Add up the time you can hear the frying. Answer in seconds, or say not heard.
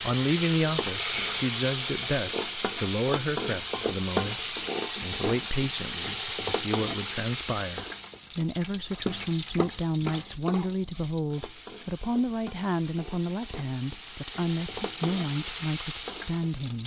17 s.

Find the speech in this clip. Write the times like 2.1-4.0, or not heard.
0.0-16.8.